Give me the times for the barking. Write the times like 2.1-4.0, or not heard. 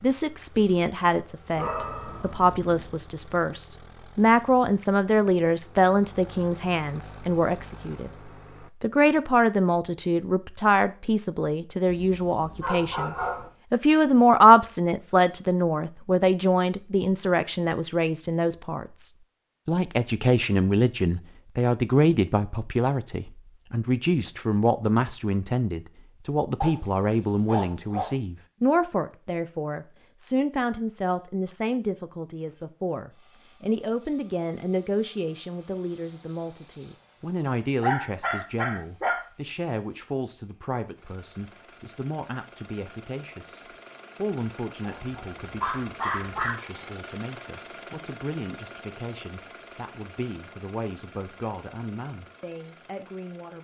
1.6-3.0, 11.8-13.5, 26.6-28.1, 37.8-39.2, 44.8-46.5.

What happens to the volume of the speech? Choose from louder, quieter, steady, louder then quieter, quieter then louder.
quieter.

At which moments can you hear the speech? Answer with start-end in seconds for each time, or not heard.
0.0-53.5.